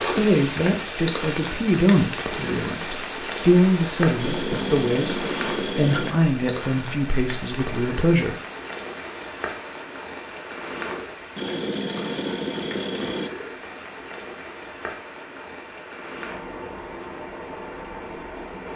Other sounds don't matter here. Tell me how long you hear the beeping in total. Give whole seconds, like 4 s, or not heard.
4 s.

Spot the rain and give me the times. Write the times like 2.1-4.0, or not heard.
0.0-18.7.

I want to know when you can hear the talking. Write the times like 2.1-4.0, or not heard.
0.0-8.4.